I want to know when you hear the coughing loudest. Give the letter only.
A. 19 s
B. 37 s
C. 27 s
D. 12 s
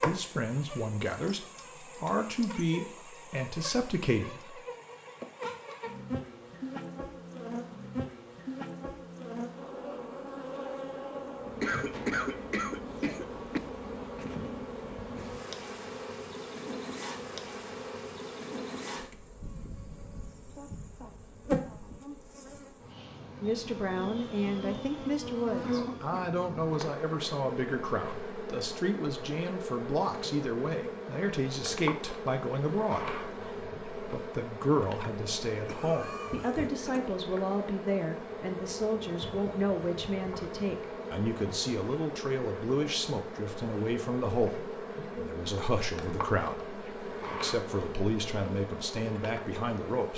D.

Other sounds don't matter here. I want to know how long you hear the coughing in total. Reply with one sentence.
You can hear the coughing for 4 seconds altogether.